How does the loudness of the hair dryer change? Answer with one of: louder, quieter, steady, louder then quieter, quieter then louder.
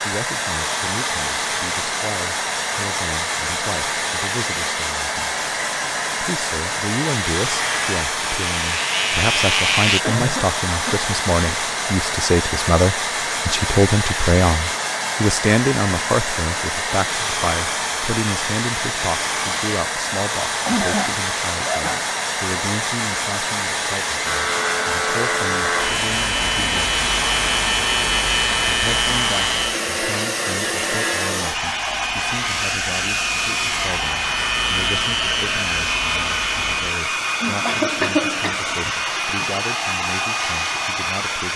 steady.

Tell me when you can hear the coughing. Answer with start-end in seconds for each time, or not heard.
10.0-11.1, 20.6-22.1, 37.4-38.9.